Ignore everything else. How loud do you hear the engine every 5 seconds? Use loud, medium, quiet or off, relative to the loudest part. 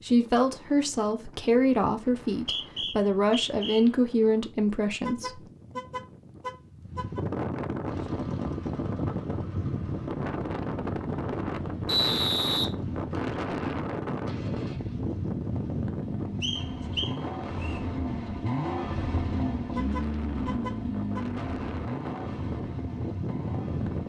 off, medium, medium, loud, loud.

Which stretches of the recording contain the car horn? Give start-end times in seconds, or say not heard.
5.0-7.2, 19.8-21.2.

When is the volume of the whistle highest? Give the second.
12 s.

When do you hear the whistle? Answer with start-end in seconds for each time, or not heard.
2.3-3.8, 11.8-13.3, 16.4-17.8.